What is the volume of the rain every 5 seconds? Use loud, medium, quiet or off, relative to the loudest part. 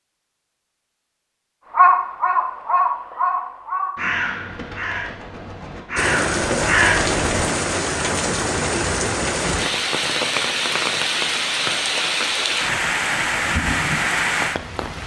off, loud, loud.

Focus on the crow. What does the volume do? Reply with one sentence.
The volume of the crow goes down, then up.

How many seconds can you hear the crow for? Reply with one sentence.
The crow can be heard for 6 seconds in total.